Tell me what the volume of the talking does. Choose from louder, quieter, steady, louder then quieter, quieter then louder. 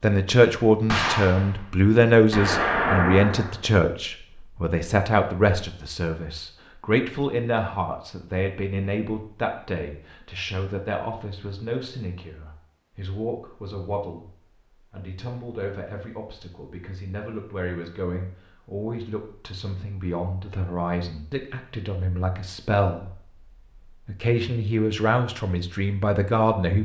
quieter then louder.